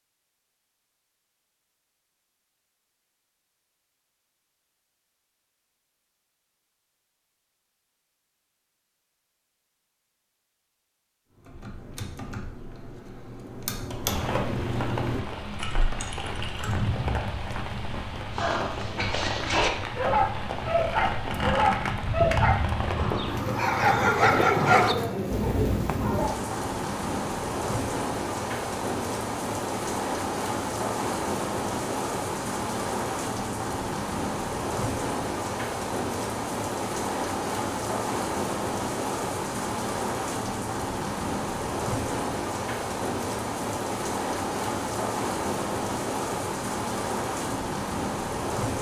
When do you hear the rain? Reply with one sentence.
The rain can be heard from 14.1 to 48.7 s.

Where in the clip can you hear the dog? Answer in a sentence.
The dog can be heard from 18.4 to 26.2 s.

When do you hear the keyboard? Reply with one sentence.
You can hear the keyboard from 11.3 to 16.9 s.